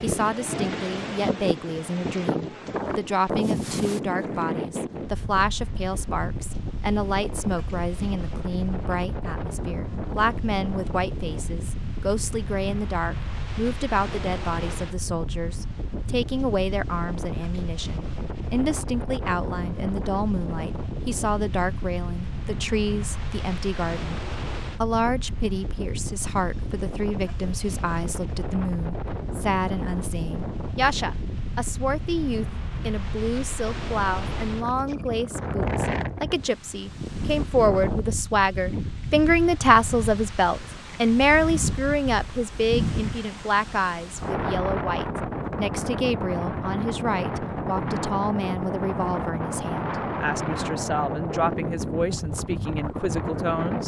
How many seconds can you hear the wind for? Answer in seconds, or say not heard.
54 s.